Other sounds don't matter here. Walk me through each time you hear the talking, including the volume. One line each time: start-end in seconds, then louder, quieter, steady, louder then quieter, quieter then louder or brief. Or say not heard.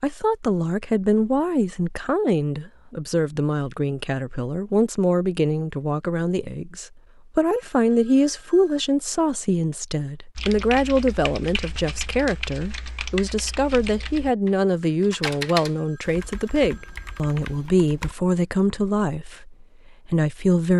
0.0-20.7 steady.